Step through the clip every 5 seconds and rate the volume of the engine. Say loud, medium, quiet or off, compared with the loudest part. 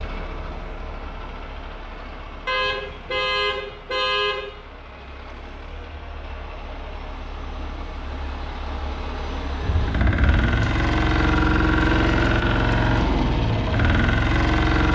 quiet, quiet, loud.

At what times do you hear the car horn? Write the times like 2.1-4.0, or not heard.
2.5-4.5, 9.6-10.7.